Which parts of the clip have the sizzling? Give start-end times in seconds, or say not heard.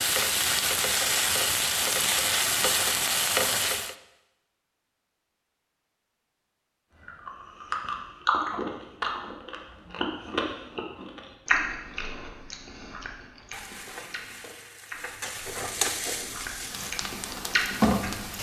0.0-4.0, 13.4-18.3.